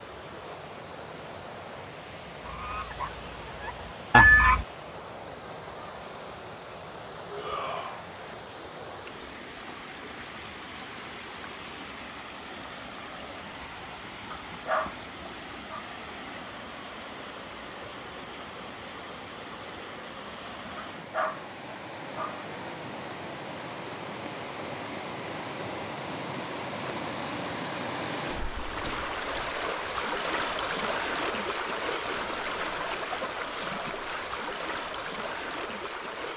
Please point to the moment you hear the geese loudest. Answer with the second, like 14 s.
4 s.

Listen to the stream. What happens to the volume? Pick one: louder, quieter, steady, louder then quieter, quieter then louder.
louder.